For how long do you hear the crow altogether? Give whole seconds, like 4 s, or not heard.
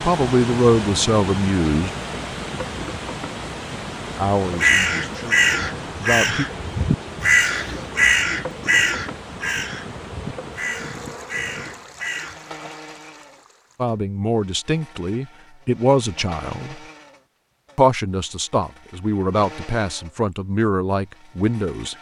8 s.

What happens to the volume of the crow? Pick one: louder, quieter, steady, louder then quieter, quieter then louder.
quieter.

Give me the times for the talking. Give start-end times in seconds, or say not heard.
0.0-1.9, 4.2-6.5, 13.8-16.8, 17.8-21.9.